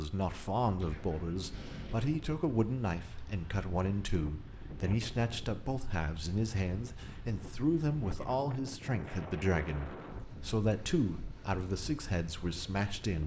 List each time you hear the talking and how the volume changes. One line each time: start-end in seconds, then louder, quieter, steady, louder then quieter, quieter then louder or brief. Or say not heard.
0.0-13.2 steady.